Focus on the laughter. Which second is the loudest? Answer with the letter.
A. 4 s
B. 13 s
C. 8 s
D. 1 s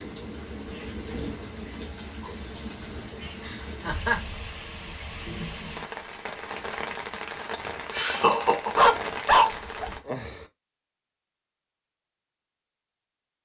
C.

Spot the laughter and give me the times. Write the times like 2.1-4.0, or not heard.
3.2-4.2, 7.5-8.8.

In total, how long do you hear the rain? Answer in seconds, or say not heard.
10 s.